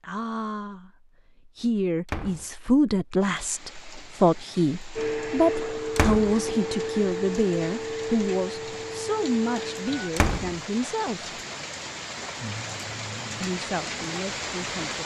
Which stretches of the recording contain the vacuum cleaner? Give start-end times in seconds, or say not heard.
5.0-10.1.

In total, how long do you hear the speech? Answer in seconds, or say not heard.
13 s.